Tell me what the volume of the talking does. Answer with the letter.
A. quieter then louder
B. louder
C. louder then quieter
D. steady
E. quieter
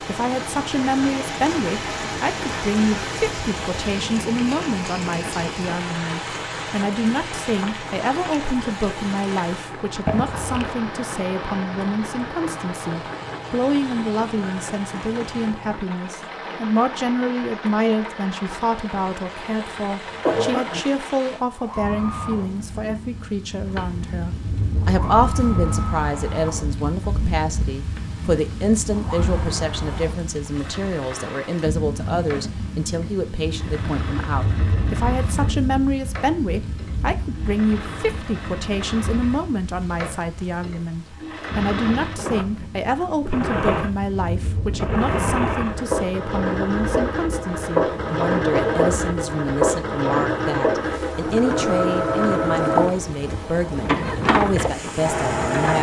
D.